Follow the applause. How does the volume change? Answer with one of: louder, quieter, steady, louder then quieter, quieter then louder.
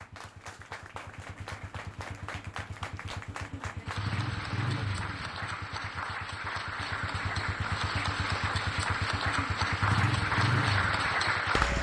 louder.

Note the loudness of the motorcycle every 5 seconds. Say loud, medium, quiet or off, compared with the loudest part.
medium, medium, loud.